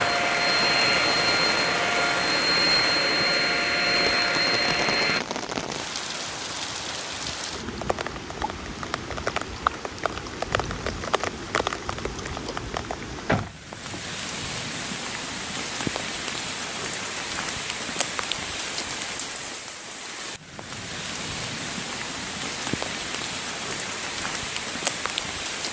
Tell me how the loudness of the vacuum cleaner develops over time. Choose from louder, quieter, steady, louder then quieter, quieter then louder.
steady.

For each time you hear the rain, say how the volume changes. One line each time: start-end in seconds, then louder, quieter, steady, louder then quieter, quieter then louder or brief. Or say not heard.
0.0-25.6 steady.